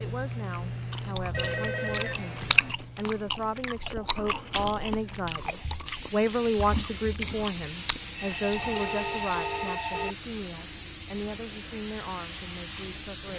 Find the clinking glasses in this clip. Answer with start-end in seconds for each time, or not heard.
not heard.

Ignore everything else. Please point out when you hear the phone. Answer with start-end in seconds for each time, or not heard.
1.3-2.8, 8.2-10.2.